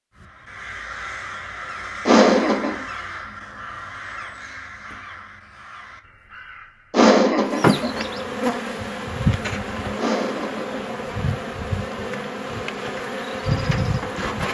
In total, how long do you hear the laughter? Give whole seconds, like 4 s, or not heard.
3 s.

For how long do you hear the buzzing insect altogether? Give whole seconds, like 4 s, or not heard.
7 s.